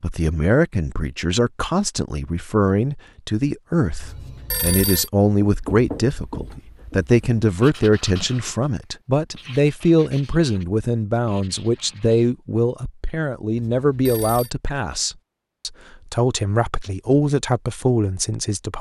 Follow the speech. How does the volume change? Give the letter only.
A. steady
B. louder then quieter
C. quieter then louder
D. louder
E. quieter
A.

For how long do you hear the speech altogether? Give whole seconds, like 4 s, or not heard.
19 s.